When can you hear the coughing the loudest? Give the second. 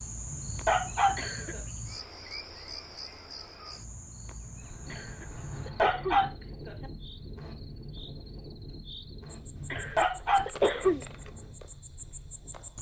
11 s.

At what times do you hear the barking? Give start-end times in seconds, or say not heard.
0.2-1.6, 5.3-6.7, 9.6-10.9.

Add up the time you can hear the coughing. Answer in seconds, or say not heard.
4 s.